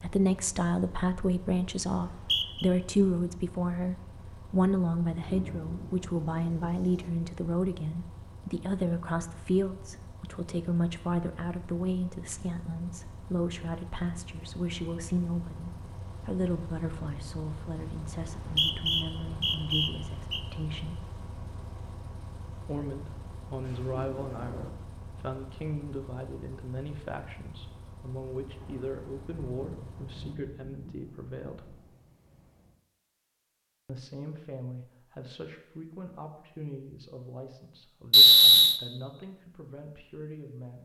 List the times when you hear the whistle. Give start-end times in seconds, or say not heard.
1.9-2.7, 18.4-20.4, 38.1-38.8.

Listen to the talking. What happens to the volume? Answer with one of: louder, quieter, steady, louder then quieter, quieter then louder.
quieter.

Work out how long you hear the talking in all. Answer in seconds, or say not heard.
37 s.